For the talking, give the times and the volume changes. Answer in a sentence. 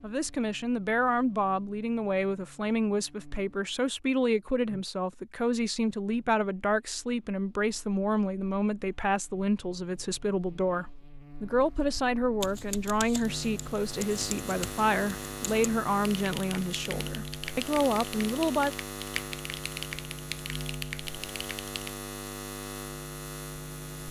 You can hear the talking from 0.0 to 18.7 s, at a steady volume.